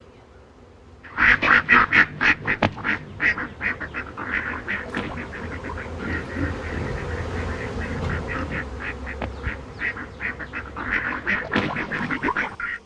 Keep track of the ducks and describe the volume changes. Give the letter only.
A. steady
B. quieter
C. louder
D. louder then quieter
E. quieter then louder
E.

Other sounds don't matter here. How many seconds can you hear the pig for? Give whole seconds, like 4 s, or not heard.
3 s.